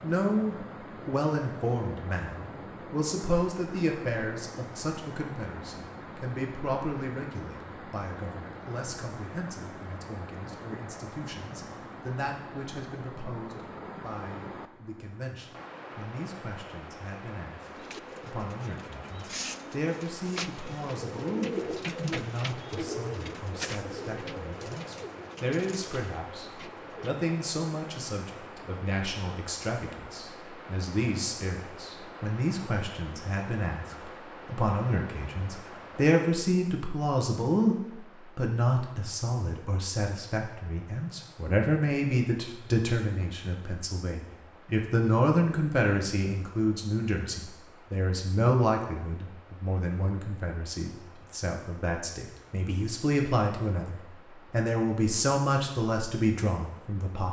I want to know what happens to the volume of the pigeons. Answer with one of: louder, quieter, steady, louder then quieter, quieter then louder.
louder then quieter.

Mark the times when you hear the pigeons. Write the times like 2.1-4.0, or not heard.
17.6-27.2.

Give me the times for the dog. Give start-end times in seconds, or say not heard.
not heard.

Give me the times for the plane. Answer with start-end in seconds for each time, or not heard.
not heard.